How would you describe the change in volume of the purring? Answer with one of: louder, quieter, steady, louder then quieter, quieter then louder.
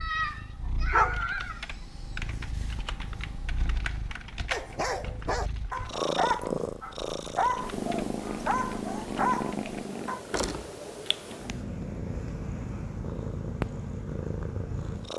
louder.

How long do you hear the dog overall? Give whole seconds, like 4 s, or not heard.
7 s.